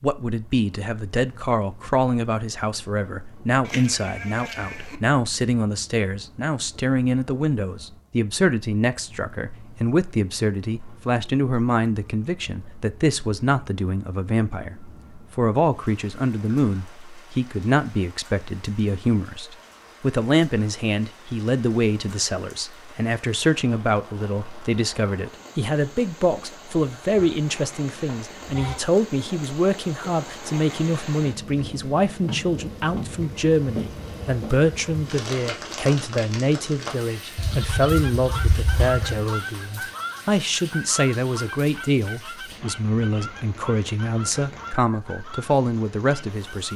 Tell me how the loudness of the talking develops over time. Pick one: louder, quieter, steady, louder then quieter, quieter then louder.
steady.